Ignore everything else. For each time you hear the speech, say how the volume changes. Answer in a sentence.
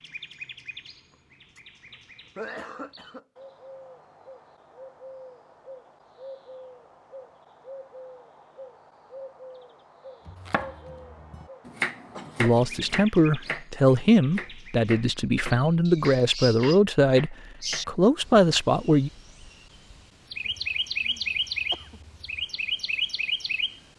The speech can be heard from 12.3 to 19.1 s, at a steady volume.